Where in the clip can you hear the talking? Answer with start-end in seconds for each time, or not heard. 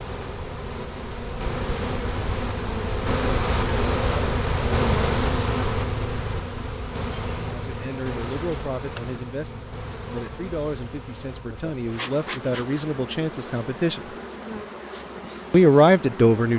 7.3-14.1, 15.5-16.5.